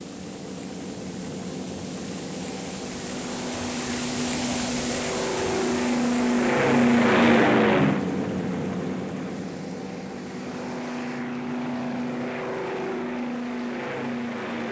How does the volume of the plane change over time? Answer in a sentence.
The volume of the plane goes up, then down.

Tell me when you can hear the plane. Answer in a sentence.
You can hear the plane from 0.0 to 14.6 s.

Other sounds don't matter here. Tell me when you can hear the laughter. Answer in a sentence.
You can't hear the laughter here.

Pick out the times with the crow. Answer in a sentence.
You can't hear the crow here.